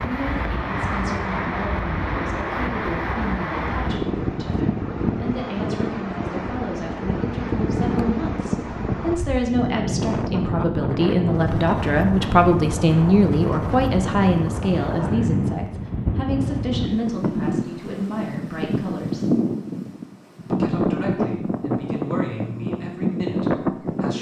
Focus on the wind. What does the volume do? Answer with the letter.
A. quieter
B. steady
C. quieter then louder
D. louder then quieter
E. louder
B.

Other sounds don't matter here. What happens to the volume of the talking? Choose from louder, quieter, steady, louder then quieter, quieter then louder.
louder then quieter.